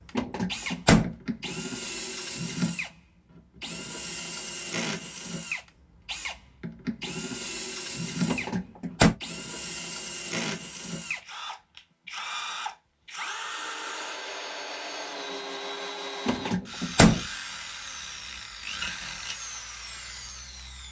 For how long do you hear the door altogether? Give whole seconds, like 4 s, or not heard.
3 s.